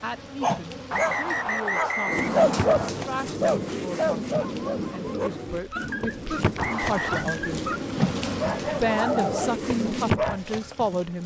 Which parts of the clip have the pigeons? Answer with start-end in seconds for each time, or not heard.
2.0-10.2.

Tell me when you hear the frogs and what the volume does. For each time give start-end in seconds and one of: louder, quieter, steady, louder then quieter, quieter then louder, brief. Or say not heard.
not heard.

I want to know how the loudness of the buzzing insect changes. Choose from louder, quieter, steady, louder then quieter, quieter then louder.
louder.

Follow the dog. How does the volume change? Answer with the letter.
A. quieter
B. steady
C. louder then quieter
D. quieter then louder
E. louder
D.